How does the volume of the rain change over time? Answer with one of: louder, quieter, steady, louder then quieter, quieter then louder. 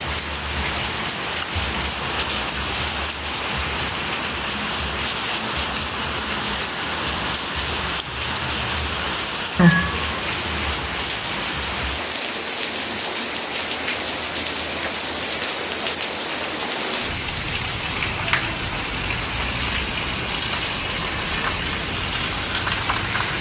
steady.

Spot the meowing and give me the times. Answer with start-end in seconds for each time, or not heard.
9.6-10.7.